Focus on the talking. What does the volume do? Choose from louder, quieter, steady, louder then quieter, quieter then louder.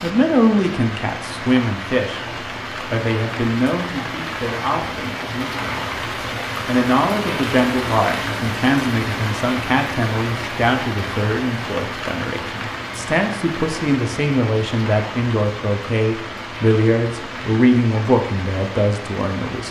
steady.